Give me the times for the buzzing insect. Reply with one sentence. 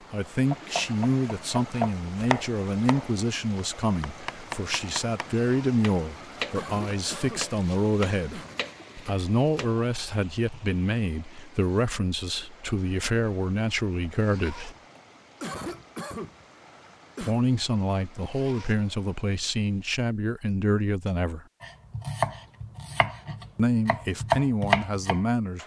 The buzzing insect can't be heard in this clip.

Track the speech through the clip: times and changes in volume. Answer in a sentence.
The speech can be heard from 0.1 to 14.8 s, at a steady volume; from 17.2 to 21.4 s, at a steady volume; and briefly from 23.6 to 25.6 s.